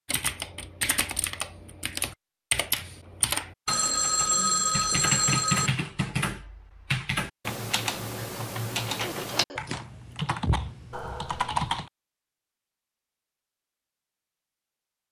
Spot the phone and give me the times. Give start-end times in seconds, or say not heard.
3.6-5.7, 10.9-11.6.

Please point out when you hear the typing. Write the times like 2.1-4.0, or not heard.
0.1-11.9.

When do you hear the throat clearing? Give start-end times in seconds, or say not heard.
9.0-9.8.